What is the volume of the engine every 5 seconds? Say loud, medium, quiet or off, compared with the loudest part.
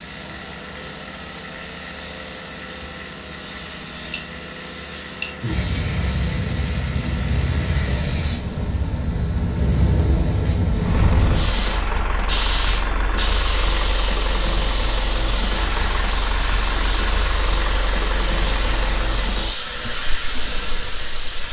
medium, medium, loud, loud, medium.